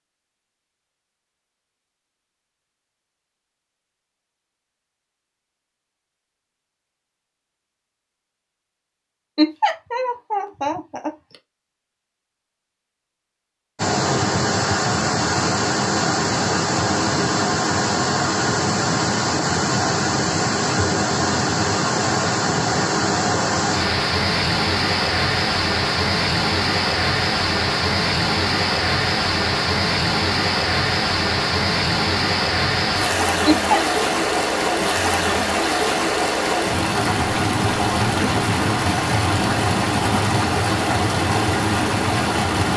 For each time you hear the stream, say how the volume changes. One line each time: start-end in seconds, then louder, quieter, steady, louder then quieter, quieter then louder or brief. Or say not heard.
13.8-42.7 steady.